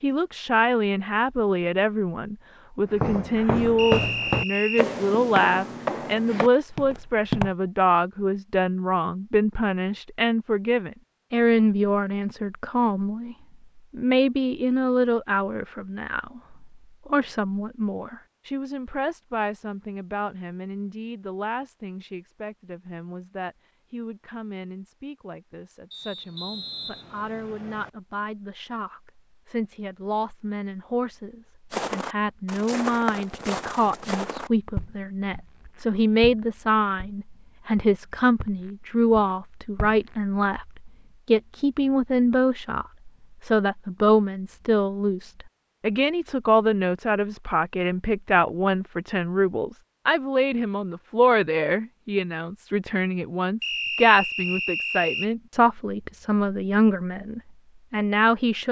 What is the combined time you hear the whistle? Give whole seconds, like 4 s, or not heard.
5 s.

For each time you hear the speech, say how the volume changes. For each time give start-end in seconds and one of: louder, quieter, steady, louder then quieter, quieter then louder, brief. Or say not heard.
0.0-58.6 quieter then louder.